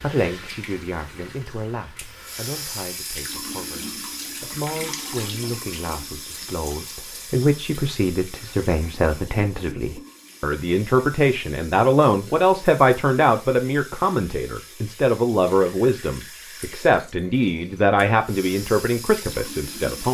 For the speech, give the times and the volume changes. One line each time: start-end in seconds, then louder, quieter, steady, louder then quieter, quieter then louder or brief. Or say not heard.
0.0-20.1 louder.